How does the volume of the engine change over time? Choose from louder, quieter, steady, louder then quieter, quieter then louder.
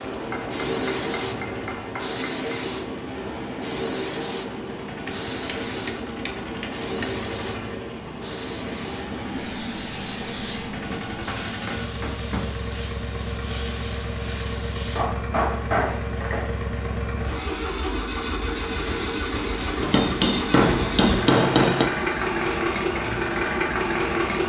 louder.